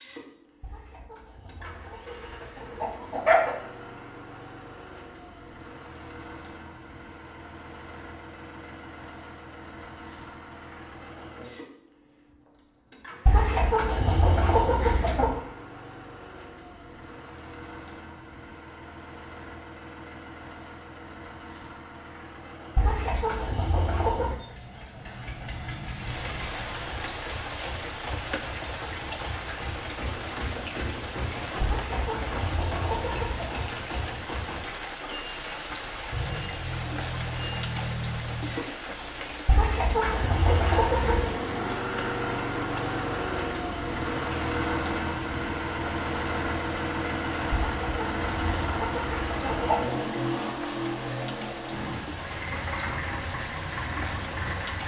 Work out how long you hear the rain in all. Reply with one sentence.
The rain can be heard for 29 seconds in total.